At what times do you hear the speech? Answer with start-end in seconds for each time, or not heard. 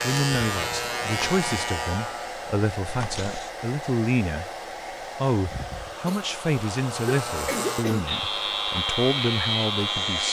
0.0-4.5, 5.2-10.2.